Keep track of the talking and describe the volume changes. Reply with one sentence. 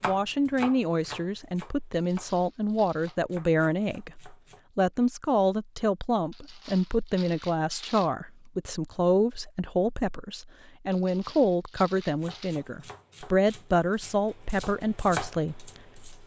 The loudness of the talking stays about the same.